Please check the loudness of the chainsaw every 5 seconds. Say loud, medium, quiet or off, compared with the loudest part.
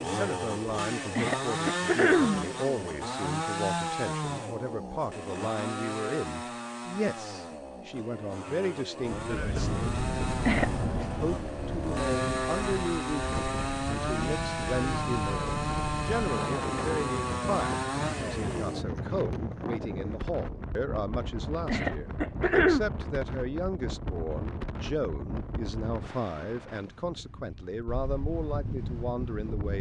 loud, medium, loud, loud, off, off.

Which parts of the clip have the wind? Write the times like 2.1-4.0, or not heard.
9.0-29.7.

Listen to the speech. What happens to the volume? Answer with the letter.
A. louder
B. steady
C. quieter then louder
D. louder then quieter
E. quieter
B.